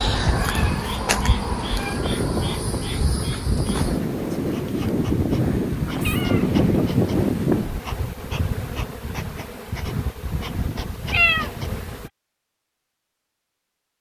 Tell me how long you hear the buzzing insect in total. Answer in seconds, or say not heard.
12 s.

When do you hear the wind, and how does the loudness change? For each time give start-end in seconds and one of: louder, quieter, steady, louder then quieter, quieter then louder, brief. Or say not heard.
0.0-7.8 louder.